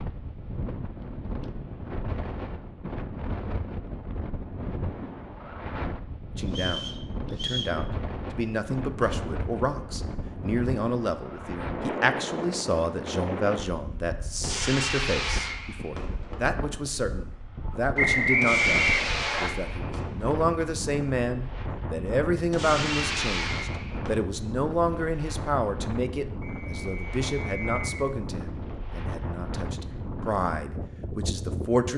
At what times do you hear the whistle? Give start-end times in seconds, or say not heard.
6.5-7.8, 17.9-19.5, 26.4-27.9.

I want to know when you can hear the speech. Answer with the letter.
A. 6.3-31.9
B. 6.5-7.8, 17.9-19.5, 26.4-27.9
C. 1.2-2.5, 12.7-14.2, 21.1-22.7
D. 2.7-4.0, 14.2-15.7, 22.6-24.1
A.